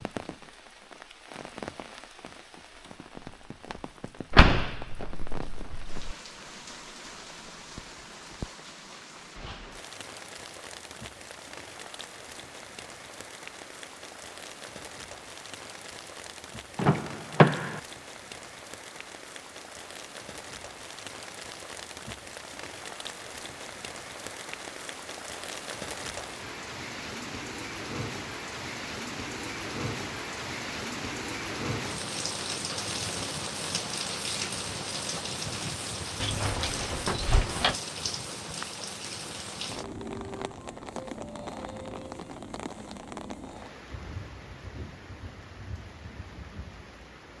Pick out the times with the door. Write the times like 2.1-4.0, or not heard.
4.3-6.1, 16.8-17.8, 36.2-37.8.